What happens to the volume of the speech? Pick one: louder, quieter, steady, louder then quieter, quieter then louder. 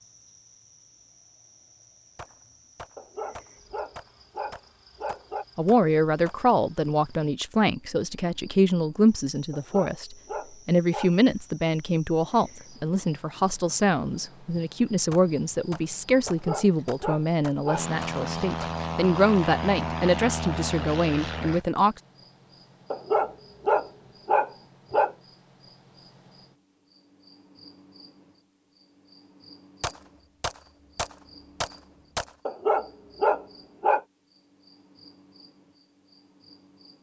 steady.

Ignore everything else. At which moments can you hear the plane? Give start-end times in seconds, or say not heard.
17.7-21.6.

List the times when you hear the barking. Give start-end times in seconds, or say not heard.
3.0-5.5, 9.5-11.2, 16.2-17.9, 22.9-25.1, 32.5-34.0.